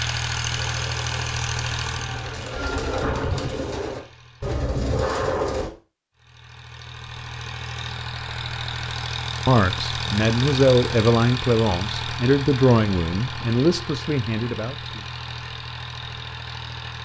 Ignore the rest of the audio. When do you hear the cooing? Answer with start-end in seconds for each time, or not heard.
0.5-5.7.